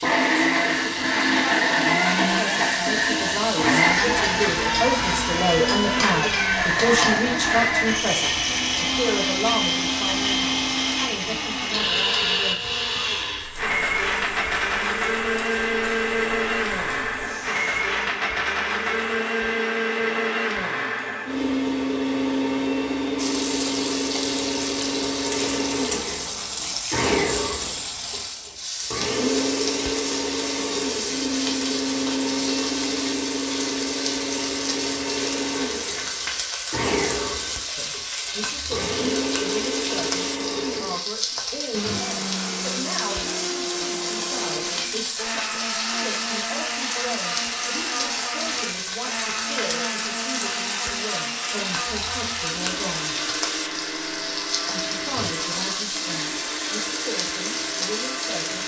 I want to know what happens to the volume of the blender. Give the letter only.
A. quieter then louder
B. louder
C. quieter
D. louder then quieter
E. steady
C.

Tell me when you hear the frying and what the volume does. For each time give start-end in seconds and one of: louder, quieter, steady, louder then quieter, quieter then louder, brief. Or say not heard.
0.0-17.9 quieter
23.1-58.6 steady.